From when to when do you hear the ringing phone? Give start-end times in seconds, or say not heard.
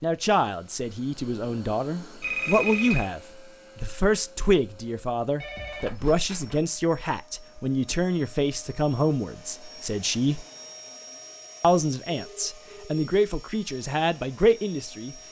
2.2-3.1, 5.4-6.7, 12.2-12.9.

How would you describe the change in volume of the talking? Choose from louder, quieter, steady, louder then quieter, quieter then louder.
steady.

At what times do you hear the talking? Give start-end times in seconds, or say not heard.
0.0-10.4, 11.6-15.2.